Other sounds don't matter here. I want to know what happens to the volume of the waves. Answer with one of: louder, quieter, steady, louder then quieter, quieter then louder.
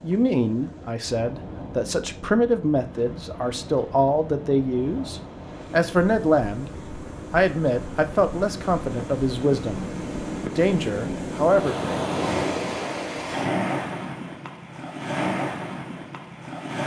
louder.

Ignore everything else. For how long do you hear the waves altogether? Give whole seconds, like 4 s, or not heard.
17 s.